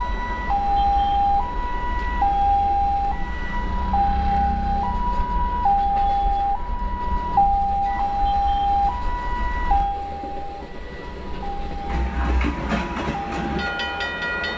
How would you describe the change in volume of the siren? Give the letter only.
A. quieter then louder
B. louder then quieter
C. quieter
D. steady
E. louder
C.